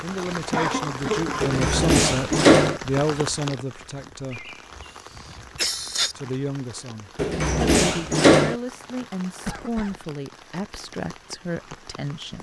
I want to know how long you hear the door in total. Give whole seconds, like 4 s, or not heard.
3 s.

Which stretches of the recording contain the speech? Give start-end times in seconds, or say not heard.
0.0-4.4, 6.2-12.3.